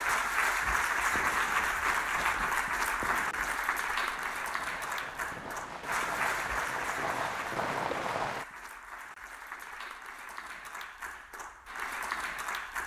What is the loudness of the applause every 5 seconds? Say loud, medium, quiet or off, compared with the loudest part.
loud, medium, medium.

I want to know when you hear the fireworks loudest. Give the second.
8 s.